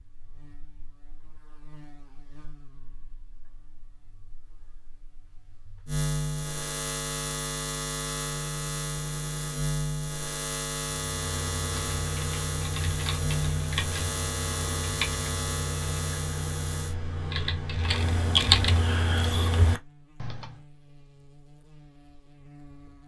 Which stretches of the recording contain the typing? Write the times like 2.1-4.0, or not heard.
11.1-20.6.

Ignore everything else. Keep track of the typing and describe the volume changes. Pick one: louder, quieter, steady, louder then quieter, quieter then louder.
louder.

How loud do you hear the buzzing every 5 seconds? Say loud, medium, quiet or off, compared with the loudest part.
quiet, loud, loud, loud, quiet.